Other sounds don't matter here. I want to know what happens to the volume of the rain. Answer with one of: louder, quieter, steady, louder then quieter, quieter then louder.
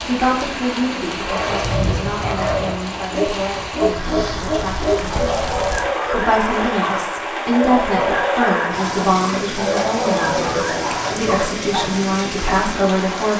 steady.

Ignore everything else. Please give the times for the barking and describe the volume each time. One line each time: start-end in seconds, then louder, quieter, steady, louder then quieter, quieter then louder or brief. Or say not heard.
1.2-12.6 steady.